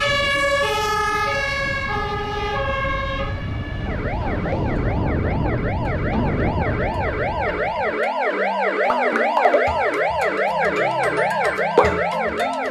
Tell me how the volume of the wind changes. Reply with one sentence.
The volume of the wind goes up.